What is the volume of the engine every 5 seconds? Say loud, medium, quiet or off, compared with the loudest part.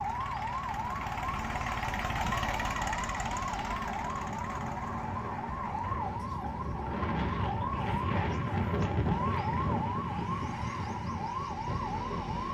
loud, medium, medium.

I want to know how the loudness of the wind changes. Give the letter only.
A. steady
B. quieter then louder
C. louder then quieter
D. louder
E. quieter
C.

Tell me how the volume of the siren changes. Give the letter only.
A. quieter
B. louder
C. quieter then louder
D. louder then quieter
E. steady
E.